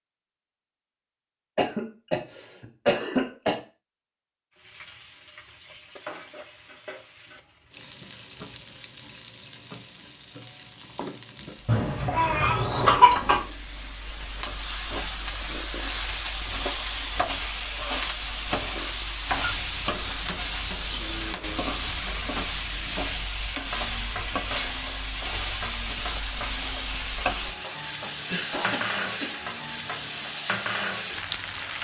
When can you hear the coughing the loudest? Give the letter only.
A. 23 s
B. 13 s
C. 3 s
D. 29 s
B.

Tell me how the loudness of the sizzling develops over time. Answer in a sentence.
The volume of the sizzling goes up.